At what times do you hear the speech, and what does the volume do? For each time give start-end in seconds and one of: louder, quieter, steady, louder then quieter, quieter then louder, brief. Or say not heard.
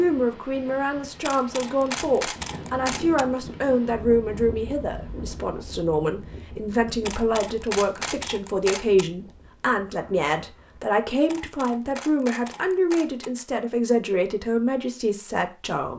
0.0-15.9 steady.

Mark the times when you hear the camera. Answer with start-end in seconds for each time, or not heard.
1.2-3.2, 7.0-9.1, 11.2-13.3.